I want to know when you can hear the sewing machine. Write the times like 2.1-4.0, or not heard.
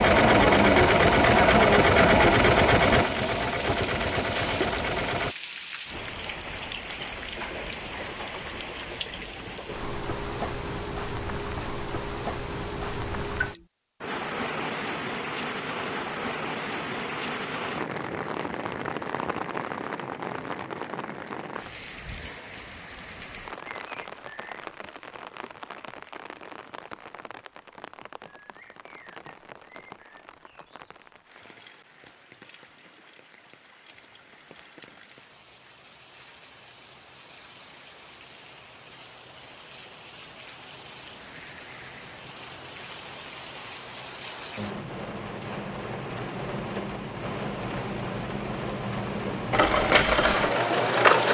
0.0-5.3, 49.5-51.2.